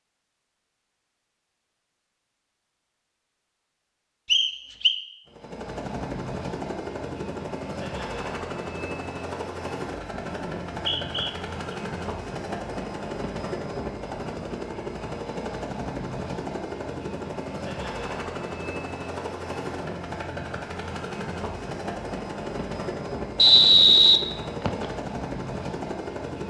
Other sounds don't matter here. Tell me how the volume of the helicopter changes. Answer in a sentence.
The loudness of the helicopter stays about the same.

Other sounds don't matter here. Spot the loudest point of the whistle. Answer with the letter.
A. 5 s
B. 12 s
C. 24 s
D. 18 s
C.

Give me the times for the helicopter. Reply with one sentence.
The helicopter can be heard from 5.2 to 26.4 s.